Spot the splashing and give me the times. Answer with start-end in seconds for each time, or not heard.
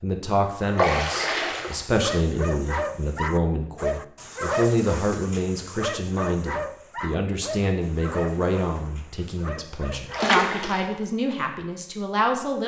0.8-1.8, 10.1-10.9.